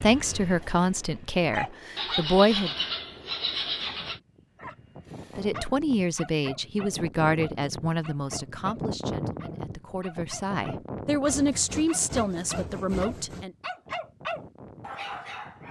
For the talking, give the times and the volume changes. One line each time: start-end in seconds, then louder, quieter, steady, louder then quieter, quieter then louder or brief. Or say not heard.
0.0-2.7 brief
5.3-13.5 quieter then louder.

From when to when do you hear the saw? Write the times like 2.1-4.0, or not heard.
1.9-4.2, 11.2-13.4.